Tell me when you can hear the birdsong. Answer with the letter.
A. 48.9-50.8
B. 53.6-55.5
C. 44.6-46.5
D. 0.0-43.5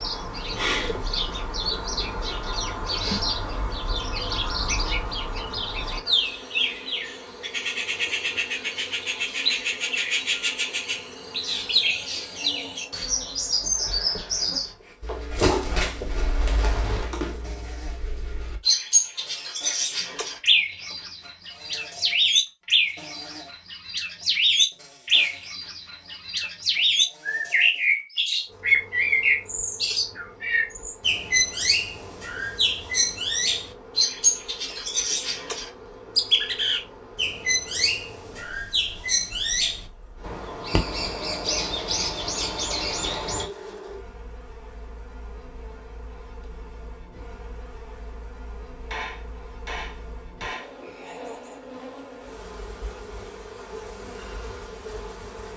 D.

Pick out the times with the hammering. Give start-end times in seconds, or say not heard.
48.9-50.8.